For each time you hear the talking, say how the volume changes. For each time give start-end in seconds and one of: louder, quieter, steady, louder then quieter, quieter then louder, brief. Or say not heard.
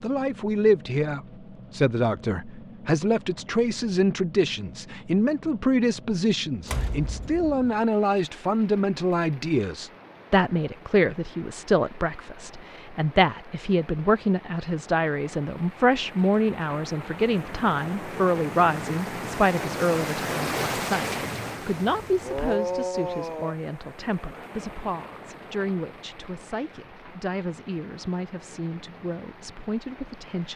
0.0-30.5 quieter.